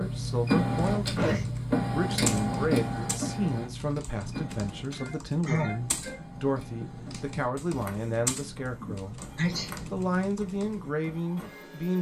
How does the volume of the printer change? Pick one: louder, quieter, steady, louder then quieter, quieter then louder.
quieter.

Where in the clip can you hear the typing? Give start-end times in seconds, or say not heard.
0.8-10.9.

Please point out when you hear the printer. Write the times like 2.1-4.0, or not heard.
0.0-11.9.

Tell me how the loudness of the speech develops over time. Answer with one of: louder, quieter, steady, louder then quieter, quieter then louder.
steady.